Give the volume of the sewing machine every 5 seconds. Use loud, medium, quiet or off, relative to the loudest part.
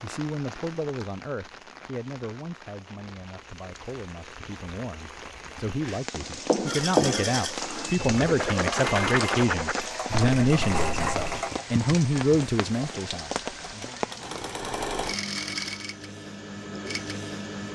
off, loud, loud, loud.